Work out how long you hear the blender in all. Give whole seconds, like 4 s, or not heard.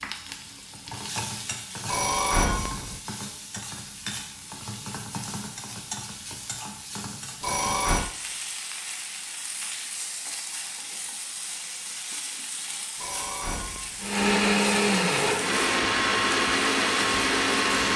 4 s.